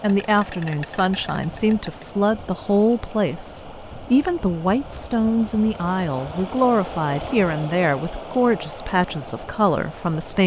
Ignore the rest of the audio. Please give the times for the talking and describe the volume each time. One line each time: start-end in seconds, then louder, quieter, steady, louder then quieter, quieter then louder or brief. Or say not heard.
0.0-10.4 steady.